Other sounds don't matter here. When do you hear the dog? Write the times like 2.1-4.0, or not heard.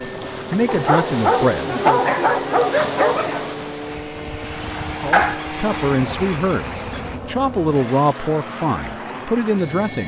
0.7-3.5, 5.1-7.0.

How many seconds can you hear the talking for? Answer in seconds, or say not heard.
7 s.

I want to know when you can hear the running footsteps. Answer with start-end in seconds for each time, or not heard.
not heard.